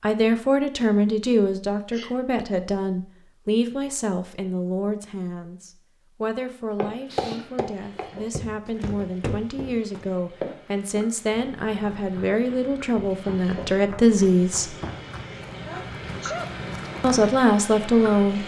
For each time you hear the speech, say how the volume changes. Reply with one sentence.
The speech can be heard from 0.0 to 14.8 s, getting quieter then louder; and briefly from 17.0 to 18.4 s.